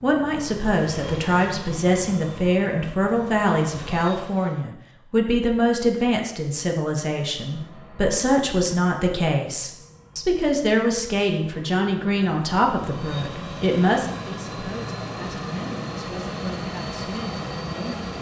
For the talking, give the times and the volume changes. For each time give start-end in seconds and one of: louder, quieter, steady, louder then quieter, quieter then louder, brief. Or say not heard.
0.0-18.1 quieter.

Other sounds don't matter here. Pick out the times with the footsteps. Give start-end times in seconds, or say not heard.
not heard.